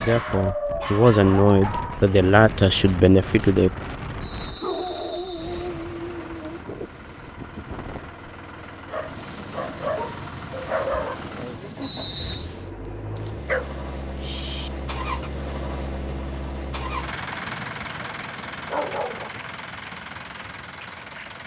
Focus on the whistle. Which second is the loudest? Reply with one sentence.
The volume of the whistle peaks at 12 seconds.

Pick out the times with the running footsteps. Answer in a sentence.
You can't hear the running footsteps here.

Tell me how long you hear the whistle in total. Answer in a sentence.
The whistle can be heard for 2 seconds in total.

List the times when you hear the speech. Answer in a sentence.
The speech can be heard from 0.0 to 3.7 s.